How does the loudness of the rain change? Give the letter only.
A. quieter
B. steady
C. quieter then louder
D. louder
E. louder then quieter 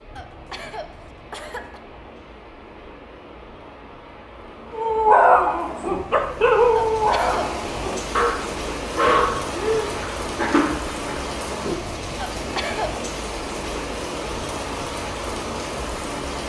D.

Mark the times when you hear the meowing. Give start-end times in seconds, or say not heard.
not heard.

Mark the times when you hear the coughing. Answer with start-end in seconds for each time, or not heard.
0.1-1.8, 6.7-8.0, 12.3-12.9.